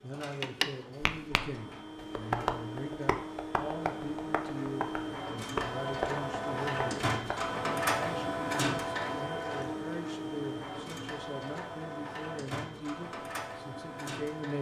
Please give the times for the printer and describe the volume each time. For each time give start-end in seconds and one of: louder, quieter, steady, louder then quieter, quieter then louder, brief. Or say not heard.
0.0-14.5 louder then quieter.